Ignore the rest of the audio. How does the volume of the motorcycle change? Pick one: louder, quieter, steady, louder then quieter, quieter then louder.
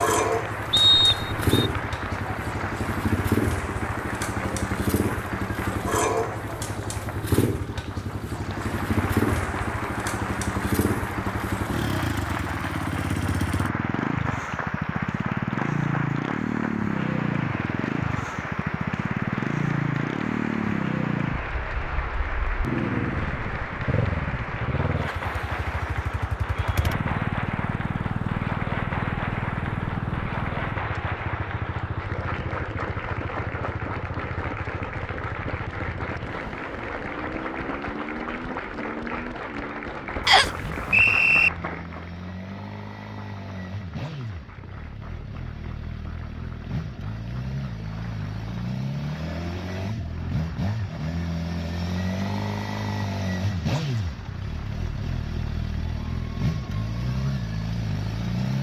quieter then louder.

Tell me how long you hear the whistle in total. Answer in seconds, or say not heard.
2 s.